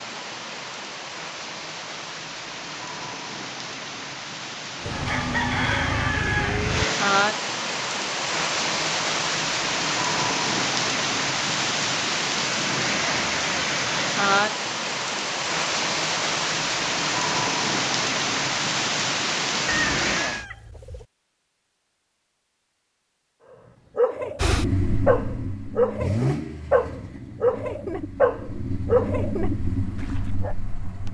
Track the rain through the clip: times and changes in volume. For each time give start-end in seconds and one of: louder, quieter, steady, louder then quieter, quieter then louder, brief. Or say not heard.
0.0-20.4 louder.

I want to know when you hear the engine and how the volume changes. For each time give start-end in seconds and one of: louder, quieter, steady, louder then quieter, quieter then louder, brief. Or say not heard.
24.4-31.0 quieter then louder.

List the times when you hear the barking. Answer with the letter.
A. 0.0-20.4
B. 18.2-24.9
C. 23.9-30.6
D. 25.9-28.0
C.